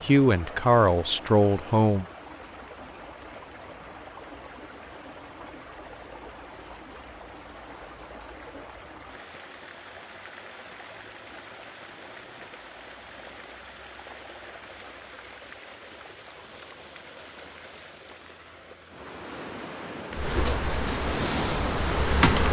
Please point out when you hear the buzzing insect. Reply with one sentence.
You can hear the buzzing insect from 20.1 to 22.4 s.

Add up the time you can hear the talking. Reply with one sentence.
You can hear the talking for 2 seconds altogether.